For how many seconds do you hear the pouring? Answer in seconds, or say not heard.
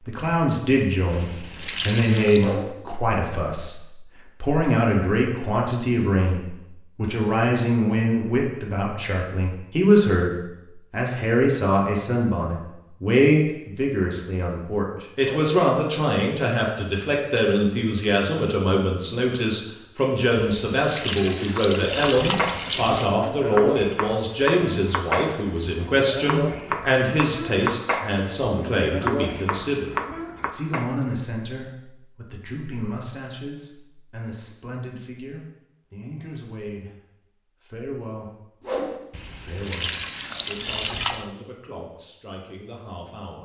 6 s.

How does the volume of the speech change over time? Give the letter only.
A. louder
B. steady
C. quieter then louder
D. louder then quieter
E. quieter
E.